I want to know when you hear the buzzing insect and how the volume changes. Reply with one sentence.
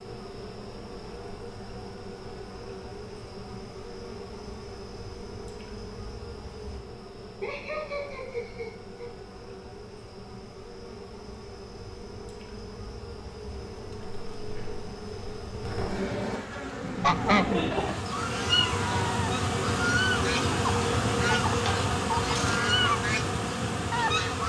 You can hear the buzzing insect from 0.0 to 24.4 s, getting louder.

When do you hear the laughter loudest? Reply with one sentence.
The loudest moment of the laughter is at 18 seconds.